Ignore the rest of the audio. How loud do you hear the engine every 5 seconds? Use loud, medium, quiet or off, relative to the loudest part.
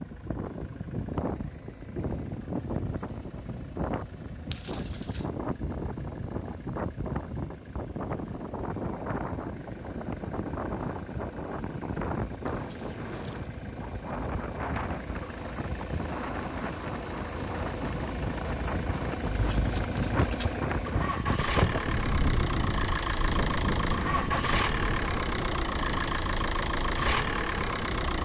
quiet, quiet, quiet, medium, loud, loud.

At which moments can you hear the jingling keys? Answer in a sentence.
The jingling keys can be heard from 4.5 to 5.3 s, from 12.4 to 13.5 s and from 19.2 to 20.6 s.